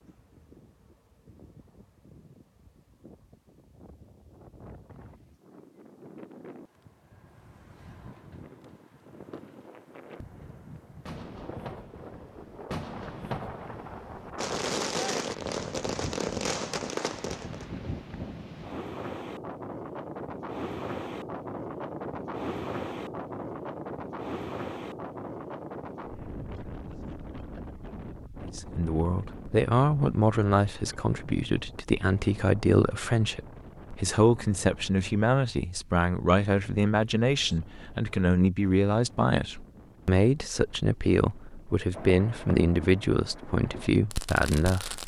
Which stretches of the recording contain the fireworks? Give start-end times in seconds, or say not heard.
11.1-17.6, 41.9-45.0.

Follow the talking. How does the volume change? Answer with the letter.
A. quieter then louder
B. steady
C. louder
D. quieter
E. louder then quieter
B.